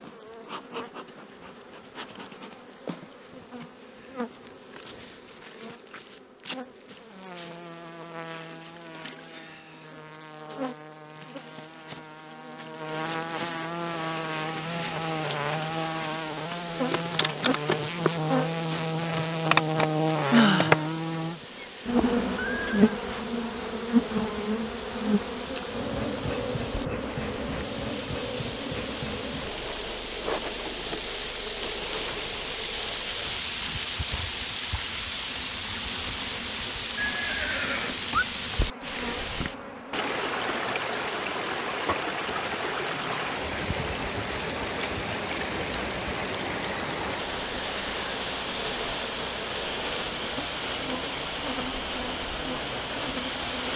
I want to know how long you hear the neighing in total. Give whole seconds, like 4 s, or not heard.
2 s.